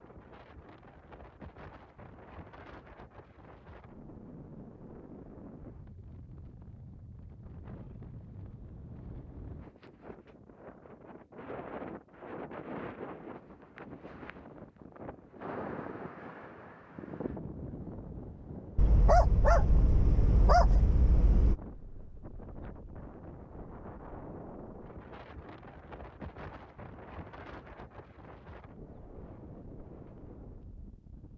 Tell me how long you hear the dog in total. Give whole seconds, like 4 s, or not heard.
3 s.